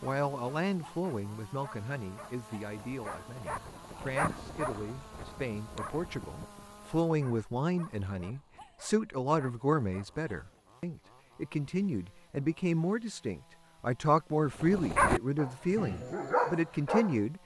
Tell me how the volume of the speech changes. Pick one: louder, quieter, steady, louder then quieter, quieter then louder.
louder.